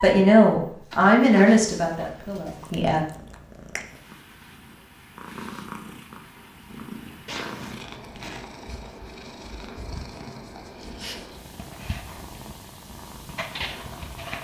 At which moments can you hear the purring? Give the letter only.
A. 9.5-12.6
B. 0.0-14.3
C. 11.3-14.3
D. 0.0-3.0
B.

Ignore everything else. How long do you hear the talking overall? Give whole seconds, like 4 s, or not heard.
3 s.